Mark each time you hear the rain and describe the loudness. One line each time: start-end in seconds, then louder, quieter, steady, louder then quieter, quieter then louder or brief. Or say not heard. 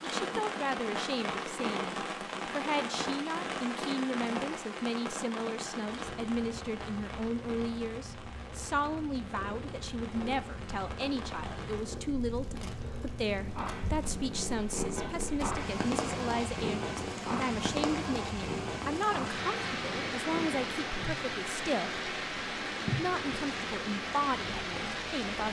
0.0-25.4 quieter then louder.